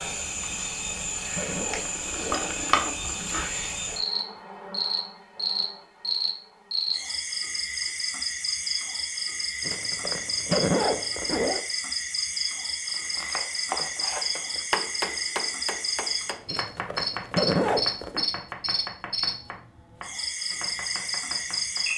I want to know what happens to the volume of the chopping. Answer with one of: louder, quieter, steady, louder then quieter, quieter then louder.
quieter.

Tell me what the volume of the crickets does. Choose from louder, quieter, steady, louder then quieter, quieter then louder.
steady.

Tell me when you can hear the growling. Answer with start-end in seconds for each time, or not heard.
1.8-3.5.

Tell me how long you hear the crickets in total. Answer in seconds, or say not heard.
22 s.